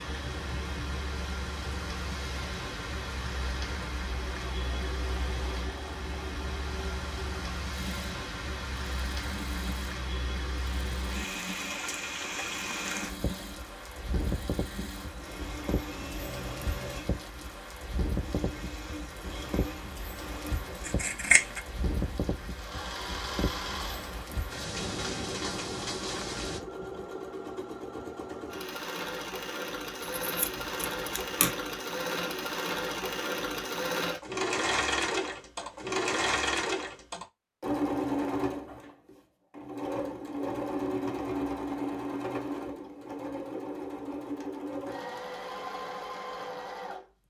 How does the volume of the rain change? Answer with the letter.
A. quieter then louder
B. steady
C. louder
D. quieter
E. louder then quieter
B.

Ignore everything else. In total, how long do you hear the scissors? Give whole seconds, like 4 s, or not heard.
2 s.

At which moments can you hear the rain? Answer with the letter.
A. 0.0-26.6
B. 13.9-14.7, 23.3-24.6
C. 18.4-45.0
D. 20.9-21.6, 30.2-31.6
A.